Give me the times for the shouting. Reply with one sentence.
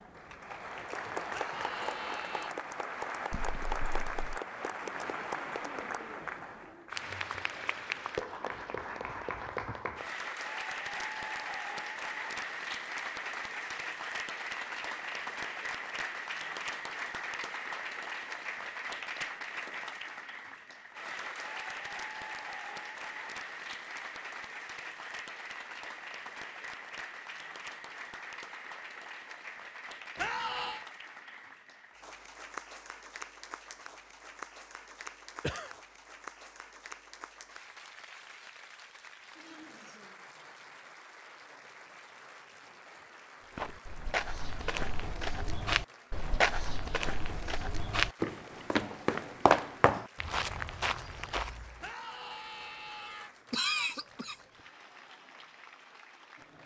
You can hear the shouting from 1.3 to 2.5 s, from 30.1 to 30.9 s and from 51.8 to 53.3 s.